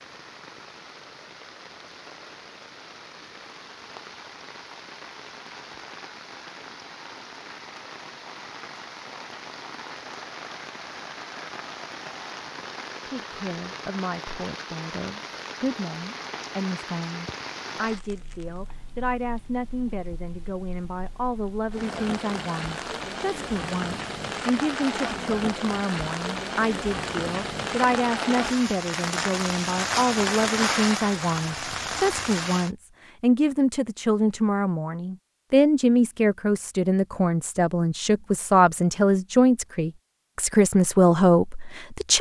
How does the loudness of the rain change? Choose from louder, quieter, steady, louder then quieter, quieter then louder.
louder.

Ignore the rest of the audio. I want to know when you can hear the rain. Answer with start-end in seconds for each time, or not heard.
0.0-32.7.